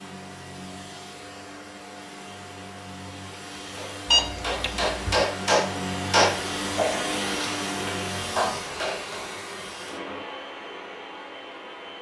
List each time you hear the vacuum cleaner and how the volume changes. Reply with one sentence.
The vacuum cleaner can be heard from 0.0 to 11.9 s, getting louder then quieter.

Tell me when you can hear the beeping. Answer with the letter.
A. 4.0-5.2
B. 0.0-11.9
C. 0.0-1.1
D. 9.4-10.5
A.